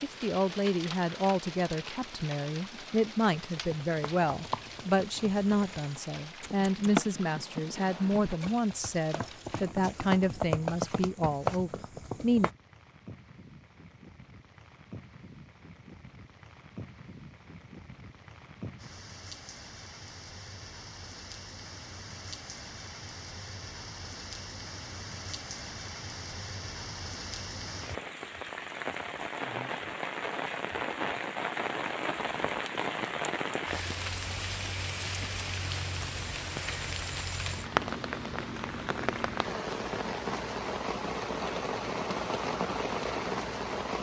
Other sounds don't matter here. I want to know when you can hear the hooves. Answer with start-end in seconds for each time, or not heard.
3.4-12.5.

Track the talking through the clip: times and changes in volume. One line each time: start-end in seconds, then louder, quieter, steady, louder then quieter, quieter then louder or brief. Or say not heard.
0.0-12.5 steady.